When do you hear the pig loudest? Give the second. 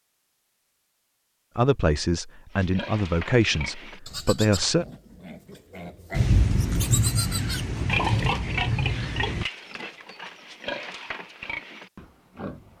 8 s.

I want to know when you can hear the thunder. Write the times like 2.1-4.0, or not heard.
6.1-9.4.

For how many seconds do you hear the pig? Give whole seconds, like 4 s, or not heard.
10 s.